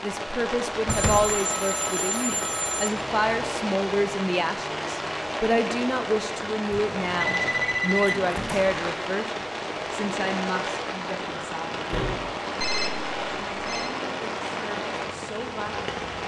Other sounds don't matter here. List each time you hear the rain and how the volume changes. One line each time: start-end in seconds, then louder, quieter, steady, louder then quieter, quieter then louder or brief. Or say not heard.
0.0-16.2 steady.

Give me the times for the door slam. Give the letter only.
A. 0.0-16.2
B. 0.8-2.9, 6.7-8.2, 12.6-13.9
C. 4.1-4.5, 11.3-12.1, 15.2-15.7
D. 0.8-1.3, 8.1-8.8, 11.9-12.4
D.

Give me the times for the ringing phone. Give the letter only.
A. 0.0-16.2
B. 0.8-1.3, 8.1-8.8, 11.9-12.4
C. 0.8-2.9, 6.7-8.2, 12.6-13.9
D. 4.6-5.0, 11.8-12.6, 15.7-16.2
C.